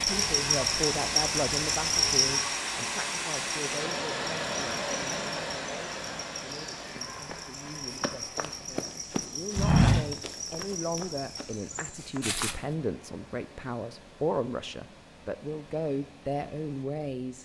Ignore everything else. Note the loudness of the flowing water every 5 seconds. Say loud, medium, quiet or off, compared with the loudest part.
loud, medium, quiet, quiet.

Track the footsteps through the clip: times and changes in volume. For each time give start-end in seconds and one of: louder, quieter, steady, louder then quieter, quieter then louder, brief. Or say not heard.
7.0-12.6 louder then quieter.